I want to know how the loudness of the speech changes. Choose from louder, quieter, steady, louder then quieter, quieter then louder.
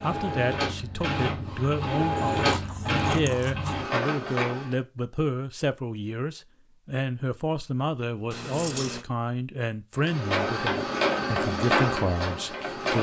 steady.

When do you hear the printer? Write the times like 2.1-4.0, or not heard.
0.0-4.8, 9.9-12.9.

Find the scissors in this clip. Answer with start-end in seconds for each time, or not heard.
2.4-3.7, 8.3-9.1.